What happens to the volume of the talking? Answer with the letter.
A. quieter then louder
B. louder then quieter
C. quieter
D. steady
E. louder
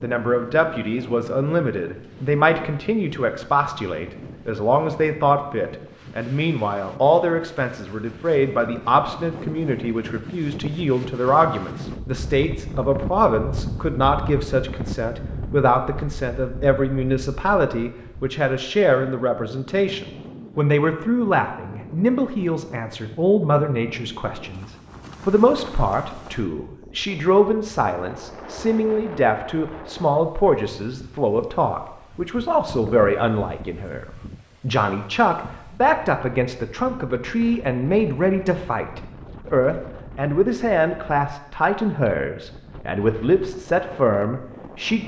D.